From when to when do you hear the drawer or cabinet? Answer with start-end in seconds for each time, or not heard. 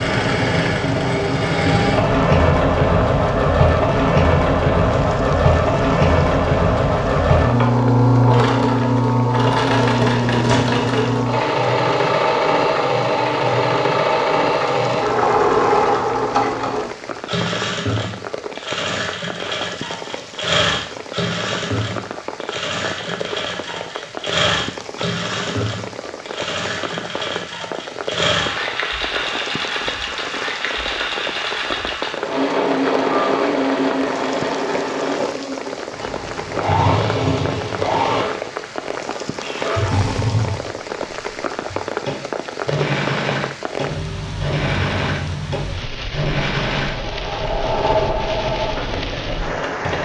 10.2-10.8.